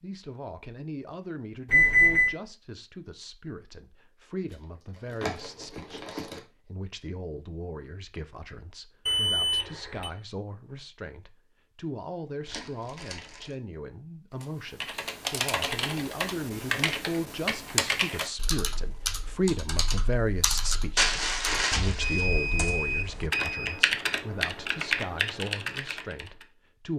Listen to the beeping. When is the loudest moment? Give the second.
2 s.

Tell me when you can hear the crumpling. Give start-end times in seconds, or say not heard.
4.5-6.4, 12.4-13.5, 20.9-22.2.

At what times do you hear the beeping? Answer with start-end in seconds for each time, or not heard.
1.6-2.4, 9.1-10.1, 22.0-23.8.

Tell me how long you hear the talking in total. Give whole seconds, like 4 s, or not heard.
27 s.